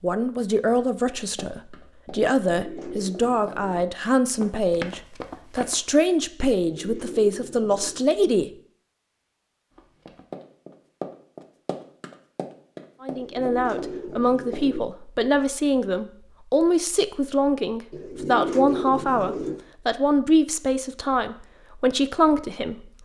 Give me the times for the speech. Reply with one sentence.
The speech can be heard from 0.0 to 8.5 s and from 13.0 to 22.9 s.